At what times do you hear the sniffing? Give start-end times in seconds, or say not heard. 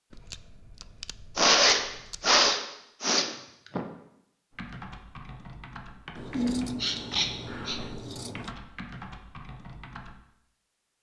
1.4-3.9, 6.3-7.8.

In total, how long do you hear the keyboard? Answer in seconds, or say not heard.
6 s.